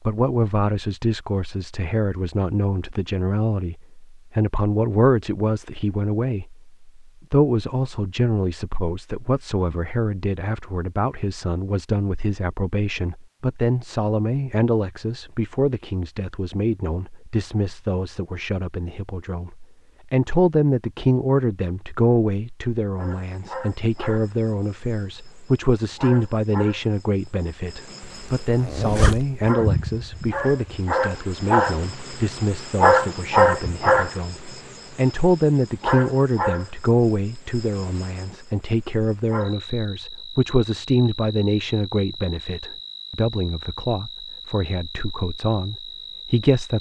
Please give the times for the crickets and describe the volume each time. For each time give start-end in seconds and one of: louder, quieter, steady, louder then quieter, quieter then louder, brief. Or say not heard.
22.9-46.7 louder then quieter.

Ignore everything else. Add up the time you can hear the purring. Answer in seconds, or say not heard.
not heard.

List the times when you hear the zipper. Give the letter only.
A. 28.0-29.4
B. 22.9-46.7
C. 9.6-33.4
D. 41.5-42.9
A.